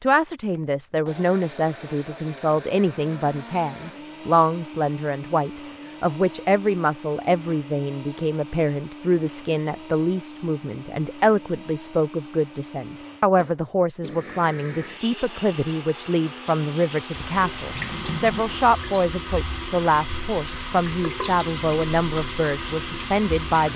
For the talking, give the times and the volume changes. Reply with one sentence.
The talking can be heard from 0.0 to 23.7 s, at a steady volume.